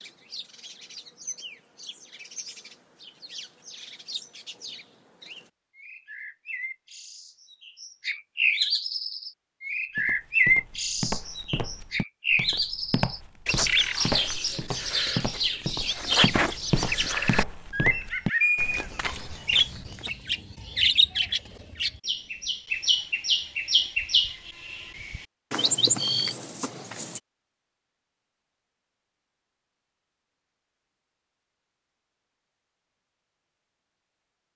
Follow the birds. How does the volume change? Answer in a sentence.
The volume of the birds goes up.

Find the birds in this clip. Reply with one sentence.
The birds can be heard from 0.0 to 27.2 s.